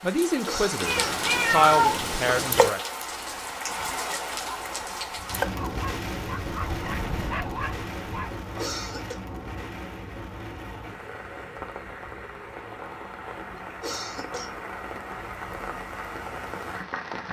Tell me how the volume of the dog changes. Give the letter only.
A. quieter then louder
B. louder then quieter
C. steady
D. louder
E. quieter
D.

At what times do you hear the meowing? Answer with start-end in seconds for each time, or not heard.
0.8-2.7.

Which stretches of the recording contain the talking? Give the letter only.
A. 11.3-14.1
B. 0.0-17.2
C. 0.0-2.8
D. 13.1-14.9
C.